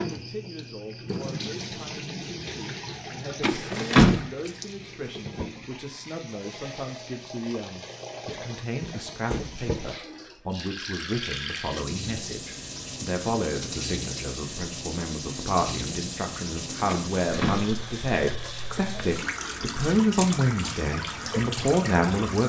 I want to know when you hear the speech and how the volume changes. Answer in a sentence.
The speech can be heard from 0.1 to 22.4 s, getting louder.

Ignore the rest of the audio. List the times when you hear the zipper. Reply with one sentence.
The zipper can't be heard in this clip.